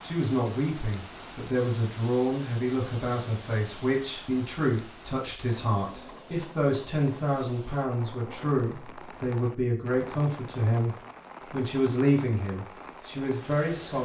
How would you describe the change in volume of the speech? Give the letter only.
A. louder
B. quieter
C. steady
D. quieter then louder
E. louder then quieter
C.